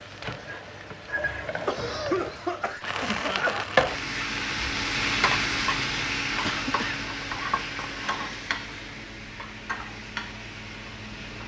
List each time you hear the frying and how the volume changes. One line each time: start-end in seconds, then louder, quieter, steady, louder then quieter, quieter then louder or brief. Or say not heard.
0.0-11.4 louder then quieter.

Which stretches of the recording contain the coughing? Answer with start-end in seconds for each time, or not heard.
1.6-3.6, 6.4-7.0.